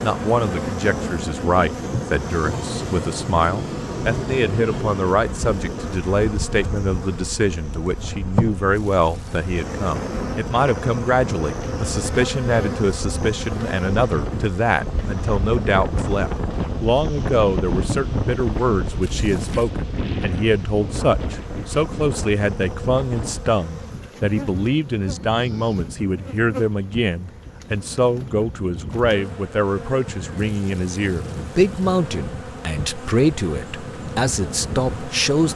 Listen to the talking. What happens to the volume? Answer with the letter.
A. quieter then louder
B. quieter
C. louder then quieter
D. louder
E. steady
E.